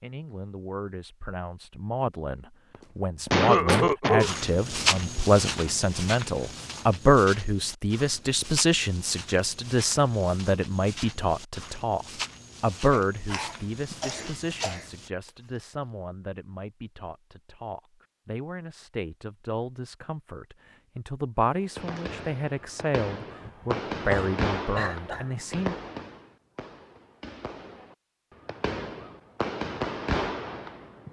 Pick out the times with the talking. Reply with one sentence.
You can hear the talking from 0.0 to 25.8 s.